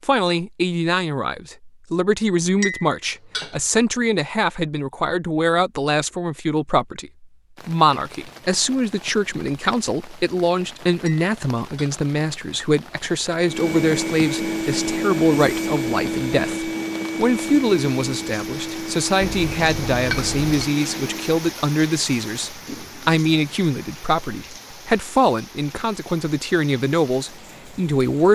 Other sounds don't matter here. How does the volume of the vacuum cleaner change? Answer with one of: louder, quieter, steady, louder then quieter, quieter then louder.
quieter.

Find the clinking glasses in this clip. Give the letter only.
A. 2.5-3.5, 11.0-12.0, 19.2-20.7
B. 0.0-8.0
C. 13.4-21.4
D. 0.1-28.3
A.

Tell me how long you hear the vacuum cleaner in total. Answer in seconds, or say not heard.
8 s.